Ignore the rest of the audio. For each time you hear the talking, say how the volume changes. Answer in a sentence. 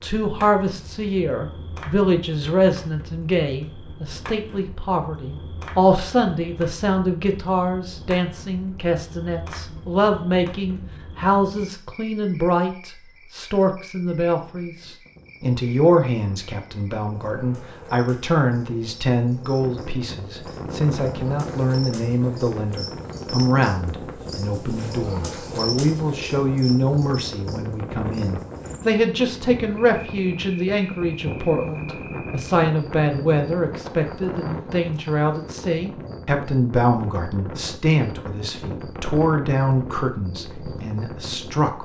The talking can be heard from 0.0 to 41.8 s, at a steady volume.